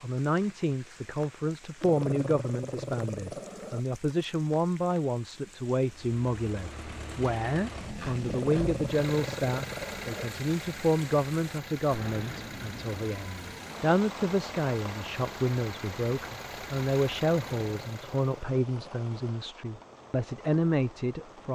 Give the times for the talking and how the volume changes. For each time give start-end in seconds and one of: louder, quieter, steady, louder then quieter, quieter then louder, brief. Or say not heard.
0.0-21.4 steady.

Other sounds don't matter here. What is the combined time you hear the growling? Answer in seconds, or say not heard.
6 s.